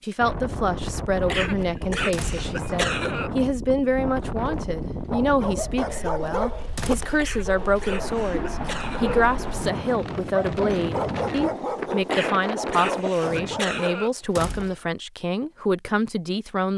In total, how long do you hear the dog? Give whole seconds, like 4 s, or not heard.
10 s.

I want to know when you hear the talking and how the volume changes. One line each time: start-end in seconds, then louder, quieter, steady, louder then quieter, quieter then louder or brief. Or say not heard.
0.0-16.7 steady.